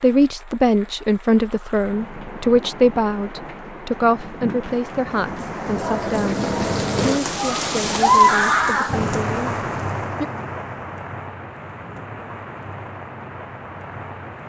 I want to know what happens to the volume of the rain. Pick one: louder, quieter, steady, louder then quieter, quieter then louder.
louder then quieter.